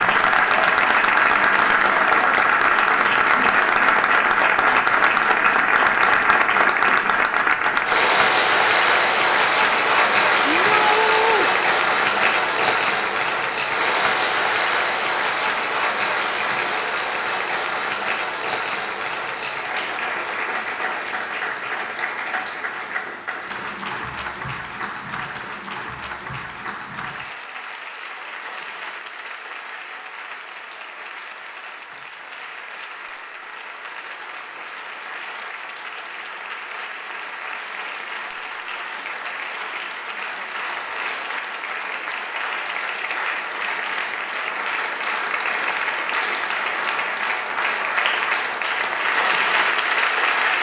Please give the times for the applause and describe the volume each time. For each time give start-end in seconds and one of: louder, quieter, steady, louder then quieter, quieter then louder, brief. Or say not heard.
0.0-50.5 quieter then louder.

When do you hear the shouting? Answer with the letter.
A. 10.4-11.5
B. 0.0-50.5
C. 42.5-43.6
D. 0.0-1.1
A.